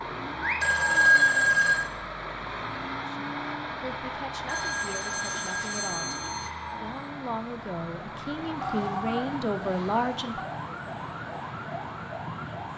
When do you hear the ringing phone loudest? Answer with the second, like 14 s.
1 s.